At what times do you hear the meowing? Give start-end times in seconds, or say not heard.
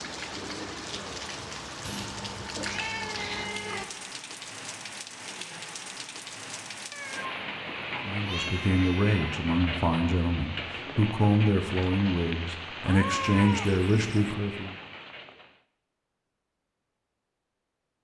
1.8-3.9, 6.9-7.3, 8.2-9.3, 12.8-14.3.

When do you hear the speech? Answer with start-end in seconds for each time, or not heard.
8.1-14.8.